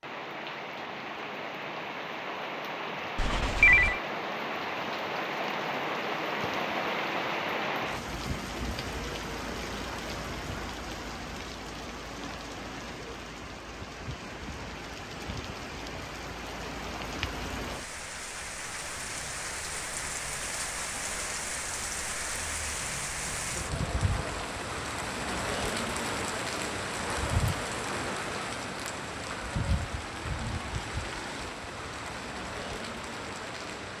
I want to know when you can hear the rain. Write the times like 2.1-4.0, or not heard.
0.0-33.9.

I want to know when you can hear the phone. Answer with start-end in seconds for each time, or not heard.
3.1-4.0.